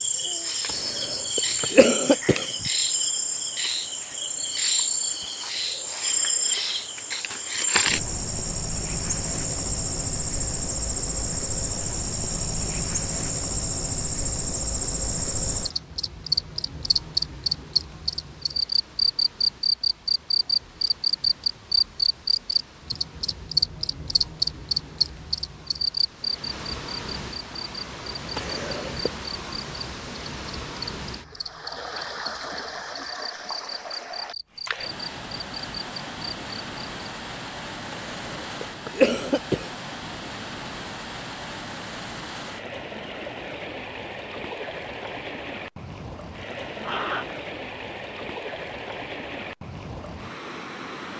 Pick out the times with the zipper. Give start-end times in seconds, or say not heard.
46.8-47.4.